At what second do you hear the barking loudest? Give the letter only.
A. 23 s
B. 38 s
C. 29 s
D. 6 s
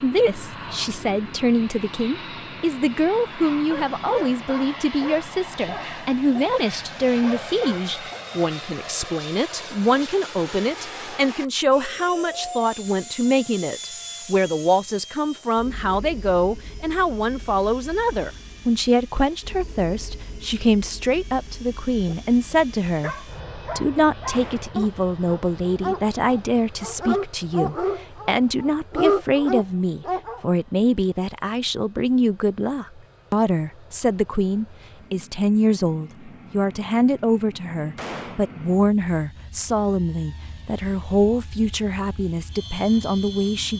C.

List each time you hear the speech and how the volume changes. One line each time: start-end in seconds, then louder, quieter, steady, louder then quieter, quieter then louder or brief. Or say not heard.
0.0-43.7 steady.